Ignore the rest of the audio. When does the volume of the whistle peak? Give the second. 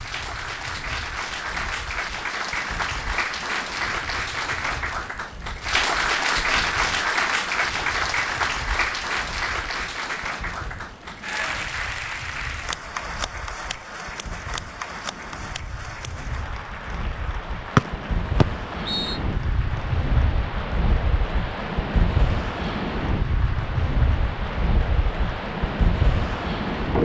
18 s.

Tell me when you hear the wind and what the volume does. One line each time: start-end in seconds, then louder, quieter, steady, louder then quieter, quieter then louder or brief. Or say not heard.
0.0-27.0 louder.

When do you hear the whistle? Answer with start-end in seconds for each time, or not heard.
17.8-19.2.